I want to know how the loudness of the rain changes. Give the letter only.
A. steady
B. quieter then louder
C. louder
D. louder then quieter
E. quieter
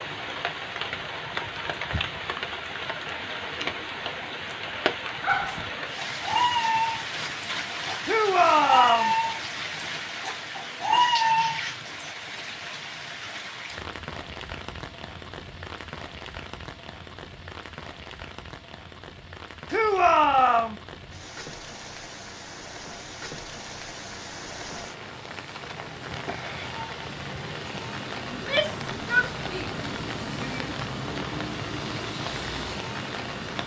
B.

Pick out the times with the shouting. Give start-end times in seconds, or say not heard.
8.1-9.2, 19.7-20.8, 28.3-30.7.